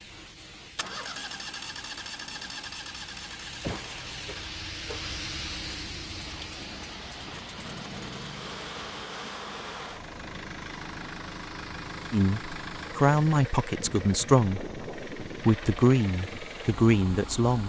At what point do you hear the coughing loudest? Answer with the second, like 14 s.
4 s.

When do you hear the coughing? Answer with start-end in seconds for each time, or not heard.
3.5-5.1.